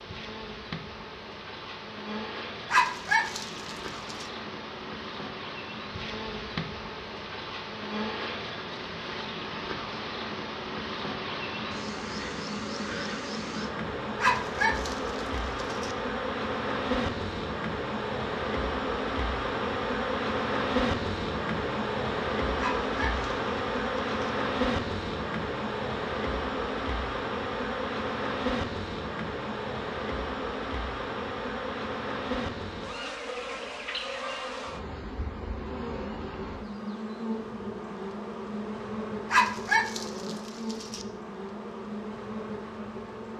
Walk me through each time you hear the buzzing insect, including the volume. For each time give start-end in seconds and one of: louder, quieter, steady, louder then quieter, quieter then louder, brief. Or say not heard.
0.0-43.3 louder then quieter.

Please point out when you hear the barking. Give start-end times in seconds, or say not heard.
2.7-4.2, 14.2-15.9, 22.6-24.3, 39.3-41.0.